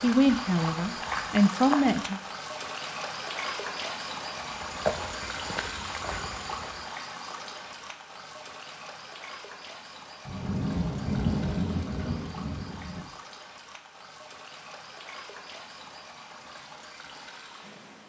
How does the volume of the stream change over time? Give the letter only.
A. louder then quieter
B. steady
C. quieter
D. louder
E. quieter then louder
C.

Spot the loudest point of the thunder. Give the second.
11 s.